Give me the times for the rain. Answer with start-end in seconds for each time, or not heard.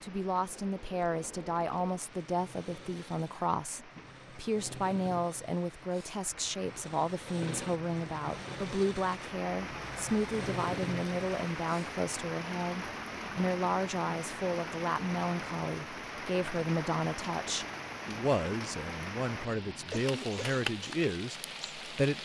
0.0-22.2.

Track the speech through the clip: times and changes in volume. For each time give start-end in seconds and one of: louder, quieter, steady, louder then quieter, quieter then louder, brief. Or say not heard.
0.0-22.2 steady.